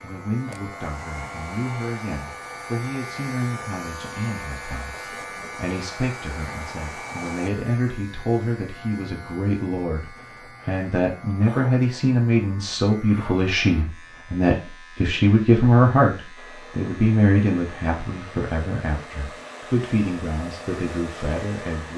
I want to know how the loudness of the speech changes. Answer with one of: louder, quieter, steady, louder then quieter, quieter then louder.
louder then quieter.